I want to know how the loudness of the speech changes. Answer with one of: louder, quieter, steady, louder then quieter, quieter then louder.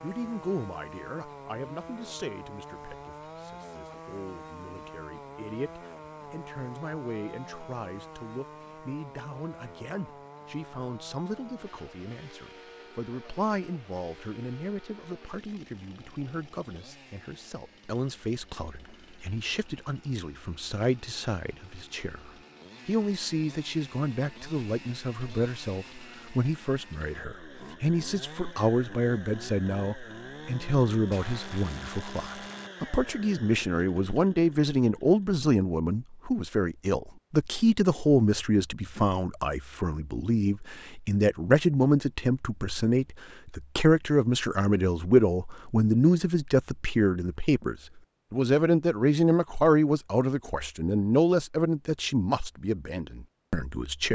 louder.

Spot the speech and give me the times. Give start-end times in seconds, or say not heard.
0.0-54.0.